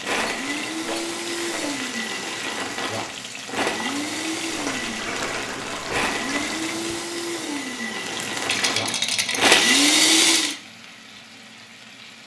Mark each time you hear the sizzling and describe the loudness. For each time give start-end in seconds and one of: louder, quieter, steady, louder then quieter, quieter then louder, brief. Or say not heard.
0.0-12.2 quieter.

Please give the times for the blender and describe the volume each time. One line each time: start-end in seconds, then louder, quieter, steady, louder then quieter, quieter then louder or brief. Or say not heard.
0.0-10.6 louder.